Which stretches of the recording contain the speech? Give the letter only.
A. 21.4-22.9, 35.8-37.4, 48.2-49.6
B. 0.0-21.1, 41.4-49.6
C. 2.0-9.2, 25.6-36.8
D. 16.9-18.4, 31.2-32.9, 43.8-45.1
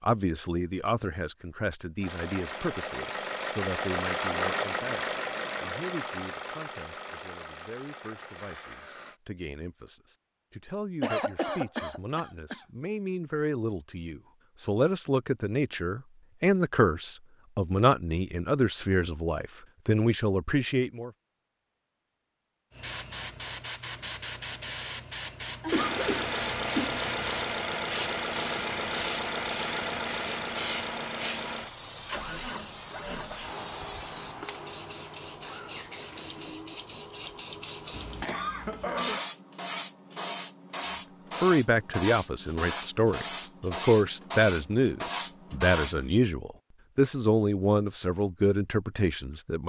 B.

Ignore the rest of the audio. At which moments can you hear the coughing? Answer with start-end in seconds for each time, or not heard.
11.0-12.6, 25.4-27.0, 37.9-39.2.